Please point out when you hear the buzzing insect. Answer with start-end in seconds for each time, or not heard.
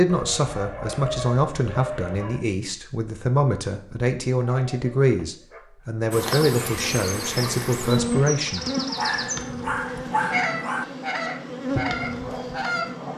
6.1-13.1.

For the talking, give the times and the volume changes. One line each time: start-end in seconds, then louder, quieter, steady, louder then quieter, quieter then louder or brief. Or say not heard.
0.0-8.7 steady.